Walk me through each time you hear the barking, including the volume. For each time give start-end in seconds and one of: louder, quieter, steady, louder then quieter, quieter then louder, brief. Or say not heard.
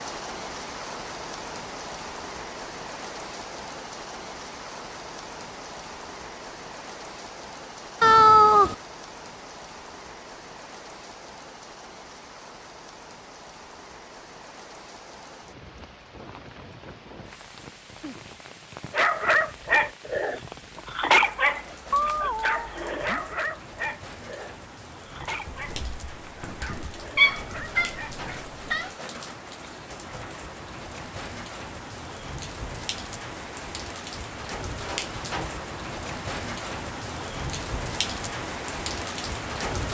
18.9-28.1 quieter.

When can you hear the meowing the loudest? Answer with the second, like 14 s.
8 s.